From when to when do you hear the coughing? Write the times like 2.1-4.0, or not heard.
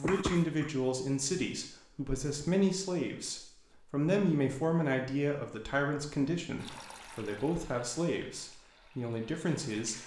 0.0-0.7.